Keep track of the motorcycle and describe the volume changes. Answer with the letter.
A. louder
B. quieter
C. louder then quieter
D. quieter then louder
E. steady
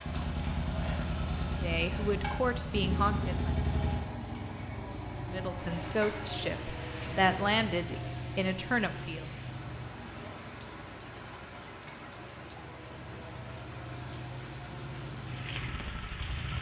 D.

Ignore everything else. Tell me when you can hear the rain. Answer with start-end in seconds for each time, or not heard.
5.6-16.5.